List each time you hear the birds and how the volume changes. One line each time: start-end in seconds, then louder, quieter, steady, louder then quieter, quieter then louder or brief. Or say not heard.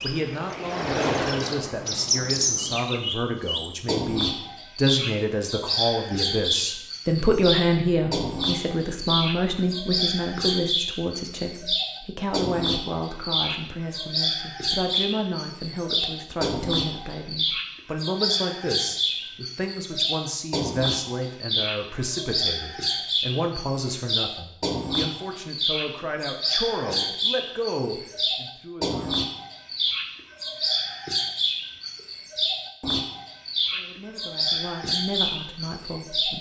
0.0-36.3 steady.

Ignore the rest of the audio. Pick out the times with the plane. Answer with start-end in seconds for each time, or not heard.
0.0-2.8.